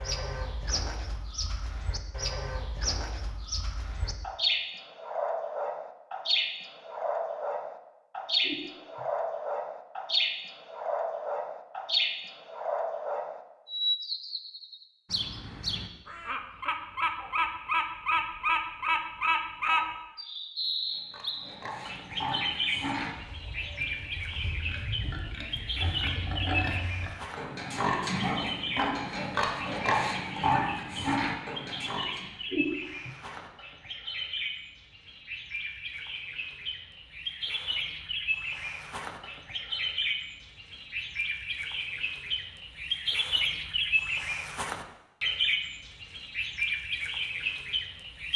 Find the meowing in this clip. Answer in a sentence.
The meowing can be heard from 8.4 to 9.1 s and from 32.5 to 33.1 s.